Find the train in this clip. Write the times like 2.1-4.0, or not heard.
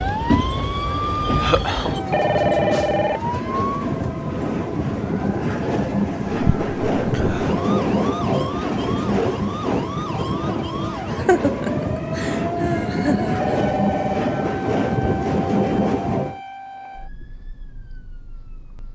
0.0-16.4.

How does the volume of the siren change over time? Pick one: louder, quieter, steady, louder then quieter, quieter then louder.
quieter.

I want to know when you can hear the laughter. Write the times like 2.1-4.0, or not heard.
1.4-1.9, 11.1-13.5.